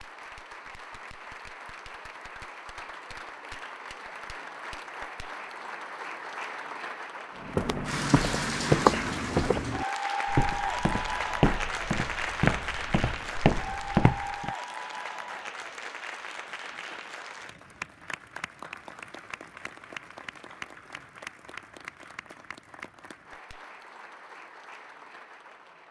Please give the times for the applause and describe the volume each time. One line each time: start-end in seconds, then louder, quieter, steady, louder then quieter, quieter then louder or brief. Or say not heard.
0.0-25.8 louder then quieter.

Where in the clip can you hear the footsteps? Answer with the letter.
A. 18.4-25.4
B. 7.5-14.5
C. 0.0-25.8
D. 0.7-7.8
B.